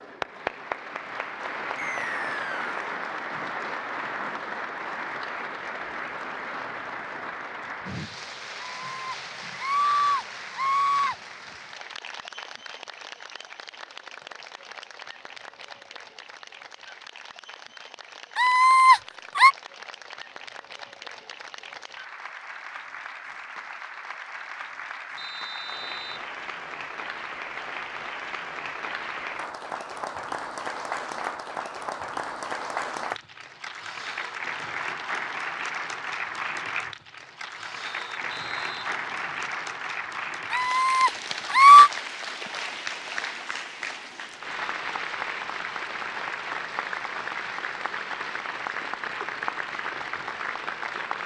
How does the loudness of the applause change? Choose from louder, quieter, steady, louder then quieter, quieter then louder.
quieter then louder.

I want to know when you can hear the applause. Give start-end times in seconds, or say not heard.
0.0-51.2.